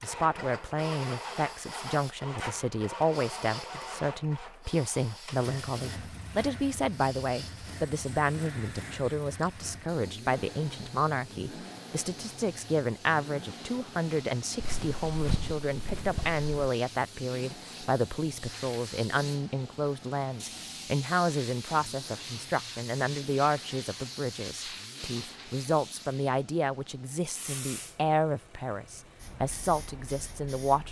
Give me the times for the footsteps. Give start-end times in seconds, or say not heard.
14.6-16.4.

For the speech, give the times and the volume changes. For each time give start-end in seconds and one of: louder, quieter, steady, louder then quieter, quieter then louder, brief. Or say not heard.
0.0-30.8 steady.